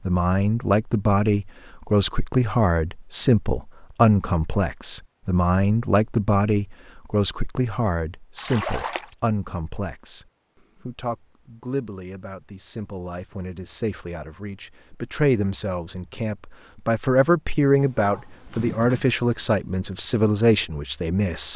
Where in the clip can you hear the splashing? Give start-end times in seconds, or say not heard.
8.3-9.2.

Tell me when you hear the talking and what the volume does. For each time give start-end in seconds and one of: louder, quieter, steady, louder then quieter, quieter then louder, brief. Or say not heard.
0.1-21.5 quieter then louder.